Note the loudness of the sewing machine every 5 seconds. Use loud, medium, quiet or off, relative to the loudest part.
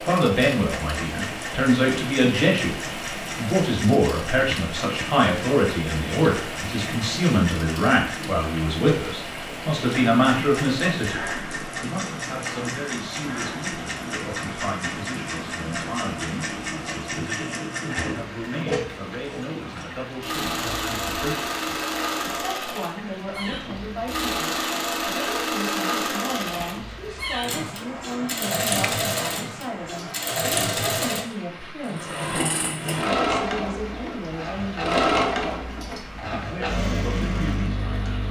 medium, medium, medium, medium, loud, loud, loud, loud.